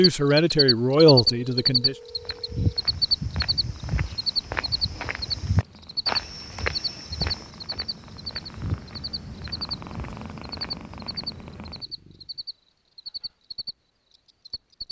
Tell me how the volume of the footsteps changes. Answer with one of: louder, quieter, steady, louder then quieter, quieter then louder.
quieter.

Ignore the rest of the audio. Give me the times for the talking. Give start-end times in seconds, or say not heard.
0.0-1.9.